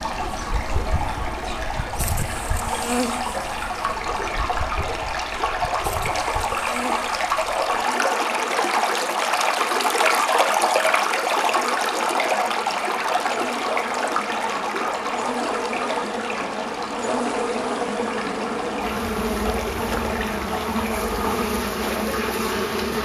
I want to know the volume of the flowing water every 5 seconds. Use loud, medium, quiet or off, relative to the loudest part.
medium, loud, loud, medium, medium.